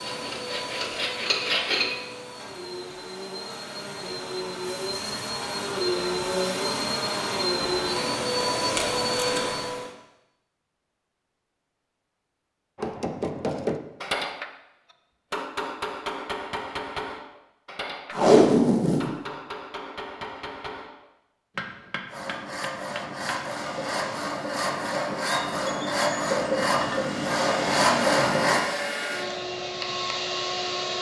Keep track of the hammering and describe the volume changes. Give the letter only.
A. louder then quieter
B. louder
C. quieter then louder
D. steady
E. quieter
E.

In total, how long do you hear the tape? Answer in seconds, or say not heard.
2 s.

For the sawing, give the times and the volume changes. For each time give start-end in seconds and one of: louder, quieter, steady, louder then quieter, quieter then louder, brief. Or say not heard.
0.0-1.9 brief
22.1-28.6 louder.